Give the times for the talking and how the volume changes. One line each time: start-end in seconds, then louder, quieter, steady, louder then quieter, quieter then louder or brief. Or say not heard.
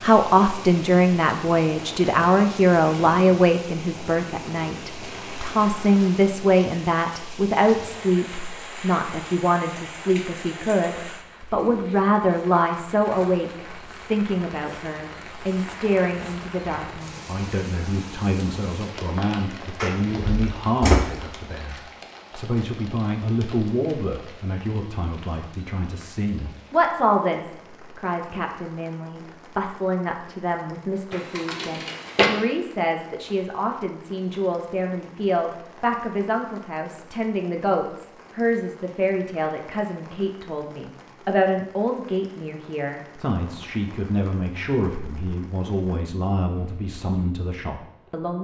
0.0-48.3 quieter.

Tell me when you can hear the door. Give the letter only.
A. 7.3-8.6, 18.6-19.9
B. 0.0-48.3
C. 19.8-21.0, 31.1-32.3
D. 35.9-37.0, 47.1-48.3
C.